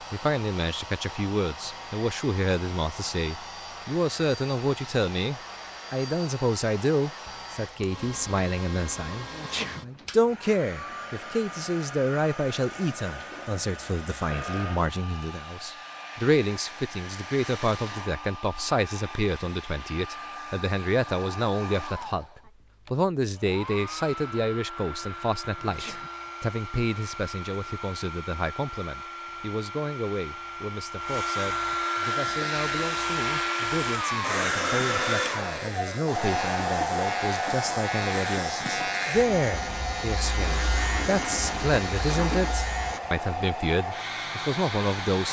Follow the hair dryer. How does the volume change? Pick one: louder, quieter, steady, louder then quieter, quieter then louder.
louder.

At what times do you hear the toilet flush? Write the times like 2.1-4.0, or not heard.
40.2-42.5.